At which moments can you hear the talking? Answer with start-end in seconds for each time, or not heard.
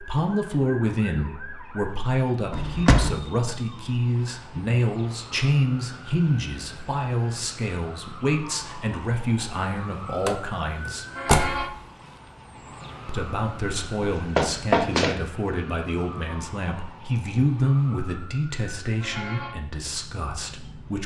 0.0-11.1, 13.1-21.0.